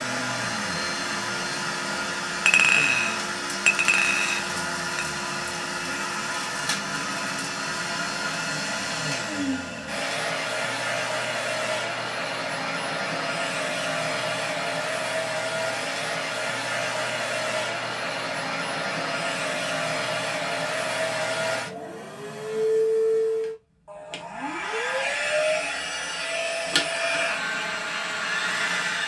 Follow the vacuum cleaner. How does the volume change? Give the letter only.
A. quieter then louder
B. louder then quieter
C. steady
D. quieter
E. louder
C.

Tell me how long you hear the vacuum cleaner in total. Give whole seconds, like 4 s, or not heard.
29 s.